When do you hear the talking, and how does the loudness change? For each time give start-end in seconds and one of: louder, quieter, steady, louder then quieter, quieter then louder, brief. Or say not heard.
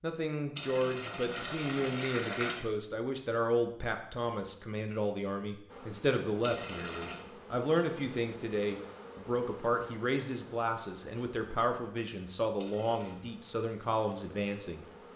0.0-14.8 steady.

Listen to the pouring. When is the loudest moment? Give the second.
2 s.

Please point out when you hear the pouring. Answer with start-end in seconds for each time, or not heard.
0.6-2.5, 6.4-7.2, 12.6-13.2.